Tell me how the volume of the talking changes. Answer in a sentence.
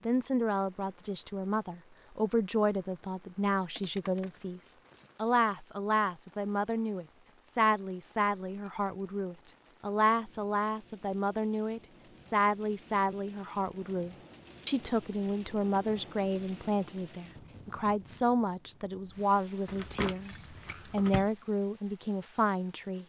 The volume of the talking stays about the same.